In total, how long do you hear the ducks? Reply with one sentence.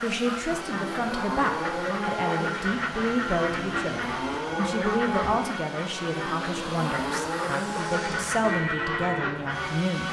The ducks can be heard for 10 seconds in total.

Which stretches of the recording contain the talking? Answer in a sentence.
The talking can be heard from 0.0 to 10.0 s.